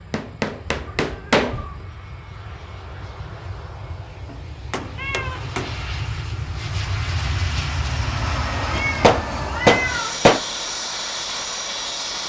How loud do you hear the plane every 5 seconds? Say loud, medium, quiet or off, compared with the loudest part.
quiet, loud, loud.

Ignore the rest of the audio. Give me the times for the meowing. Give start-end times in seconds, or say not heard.
0.7-1.9, 5.0-5.5, 8.7-10.2.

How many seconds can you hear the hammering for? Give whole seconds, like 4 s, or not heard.
5 s.